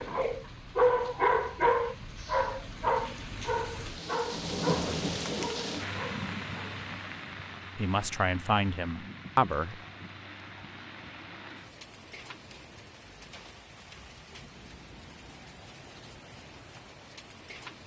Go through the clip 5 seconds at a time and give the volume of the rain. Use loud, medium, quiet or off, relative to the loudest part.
loud, loud, medium, medium.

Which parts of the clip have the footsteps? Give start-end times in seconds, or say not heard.
not heard.